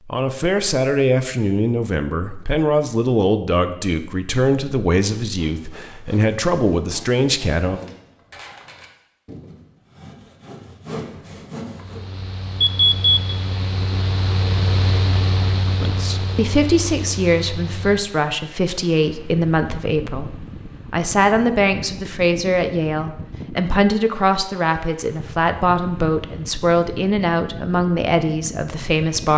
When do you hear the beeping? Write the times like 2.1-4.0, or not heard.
12.6-13.3.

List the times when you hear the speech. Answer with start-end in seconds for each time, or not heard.
0.1-7.8, 15.8-29.3.